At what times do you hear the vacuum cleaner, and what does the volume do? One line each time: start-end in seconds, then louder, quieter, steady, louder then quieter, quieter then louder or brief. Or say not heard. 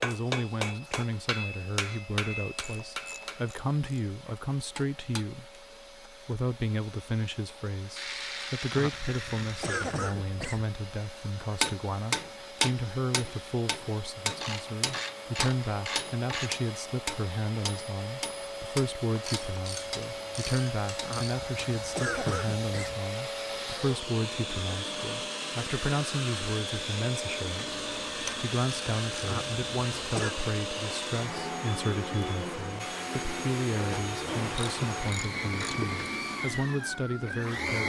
0.0-37.8 louder.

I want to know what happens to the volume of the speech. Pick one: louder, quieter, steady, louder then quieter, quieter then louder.
steady.